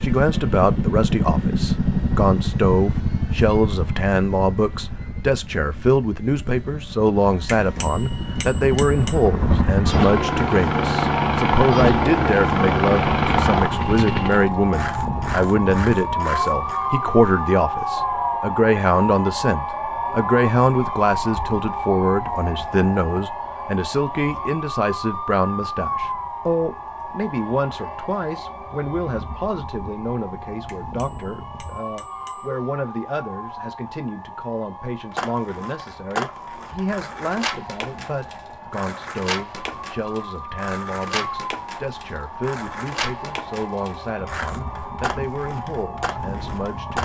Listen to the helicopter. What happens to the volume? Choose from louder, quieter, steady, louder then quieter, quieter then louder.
quieter then louder.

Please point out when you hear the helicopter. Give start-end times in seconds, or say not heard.
0.0-14.4.